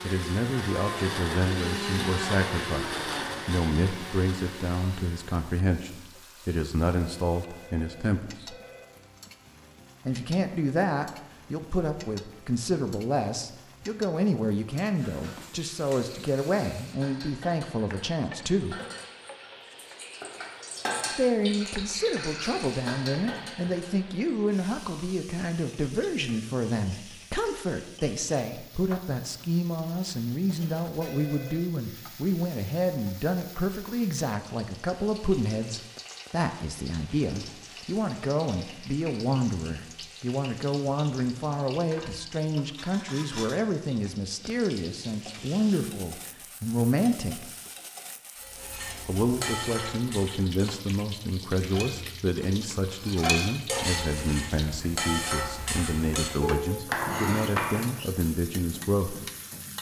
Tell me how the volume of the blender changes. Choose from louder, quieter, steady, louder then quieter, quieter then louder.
quieter.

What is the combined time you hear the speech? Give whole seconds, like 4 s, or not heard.
54 s.